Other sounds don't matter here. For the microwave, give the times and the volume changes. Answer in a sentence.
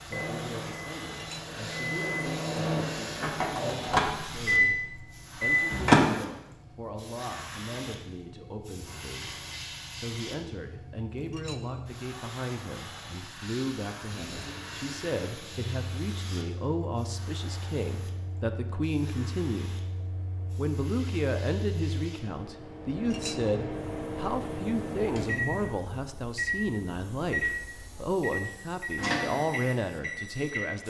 You can hear the microwave from 0.0 to 6.0 s, getting louder; and from 14.1 to 30.8 s, getting louder.